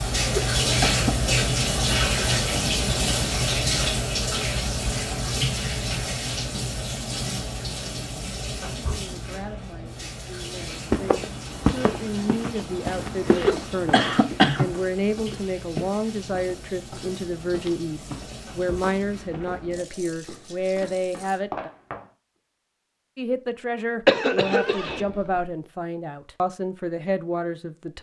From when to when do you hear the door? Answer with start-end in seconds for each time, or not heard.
not heard.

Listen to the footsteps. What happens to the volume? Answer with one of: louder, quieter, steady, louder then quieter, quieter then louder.
quieter.